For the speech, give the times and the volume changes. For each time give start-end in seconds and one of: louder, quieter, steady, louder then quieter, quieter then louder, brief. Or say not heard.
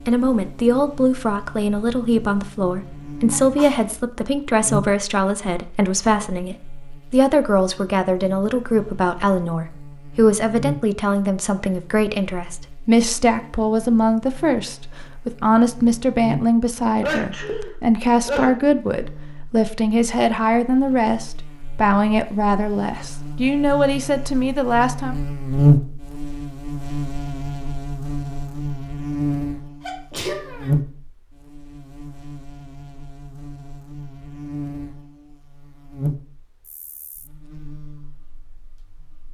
0.1-25.1 steady.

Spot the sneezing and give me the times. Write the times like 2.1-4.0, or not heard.
2.9-3.9, 17.0-18.6, 29.9-30.7.